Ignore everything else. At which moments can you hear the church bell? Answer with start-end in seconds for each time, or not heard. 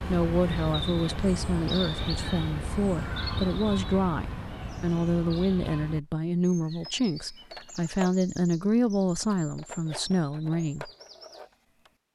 not heard.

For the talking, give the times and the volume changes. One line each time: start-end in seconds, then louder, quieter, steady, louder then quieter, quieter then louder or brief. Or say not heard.
0.0-10.9 steady.